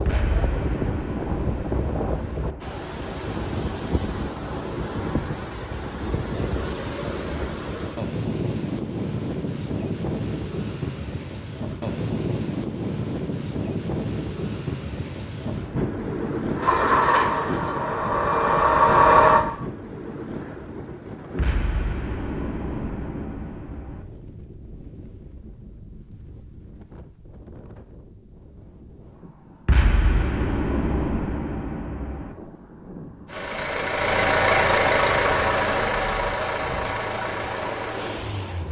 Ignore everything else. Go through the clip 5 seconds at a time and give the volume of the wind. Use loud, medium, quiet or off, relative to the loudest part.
loud, loud, loud, loud, medium, quiet, quiet, medium.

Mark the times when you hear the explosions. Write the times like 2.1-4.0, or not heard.
0.1-2.7, 21.4-24.1, 29.6-32.4.